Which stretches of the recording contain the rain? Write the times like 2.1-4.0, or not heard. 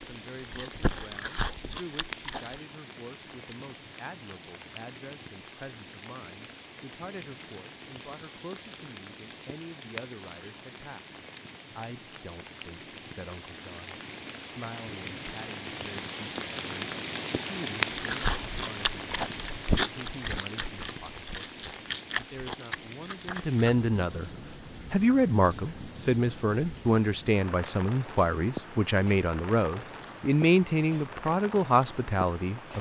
0.0-32.7.